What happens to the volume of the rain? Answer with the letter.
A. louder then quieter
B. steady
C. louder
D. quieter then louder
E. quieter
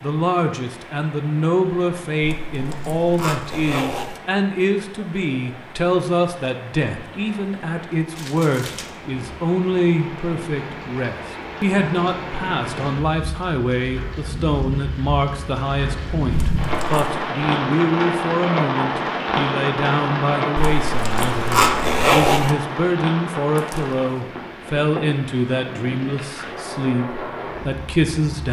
A.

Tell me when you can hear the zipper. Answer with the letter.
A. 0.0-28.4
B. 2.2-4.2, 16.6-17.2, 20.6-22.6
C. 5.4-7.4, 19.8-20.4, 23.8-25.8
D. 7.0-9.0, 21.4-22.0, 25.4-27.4
B.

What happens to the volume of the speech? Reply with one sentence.
The loudness of the speech stays about the same.